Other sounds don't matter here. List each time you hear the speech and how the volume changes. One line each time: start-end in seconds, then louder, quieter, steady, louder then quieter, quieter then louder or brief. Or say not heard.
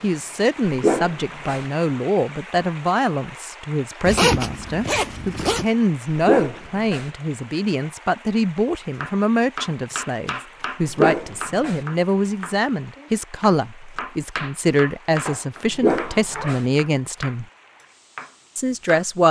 0.0-17.4 steady
18.6-19.2 brief.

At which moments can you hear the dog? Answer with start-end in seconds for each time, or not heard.
0.7-1.6, 6.0-7.1, 10.8-11.8, 15.7-16.6.